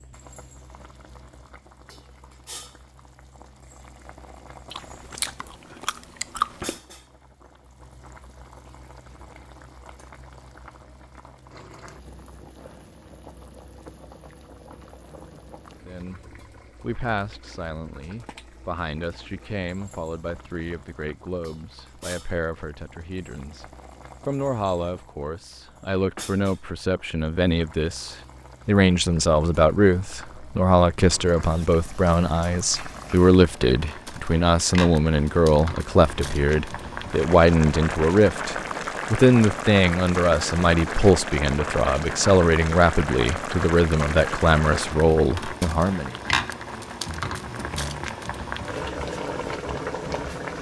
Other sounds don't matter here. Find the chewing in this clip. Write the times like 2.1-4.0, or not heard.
4.7-6.8.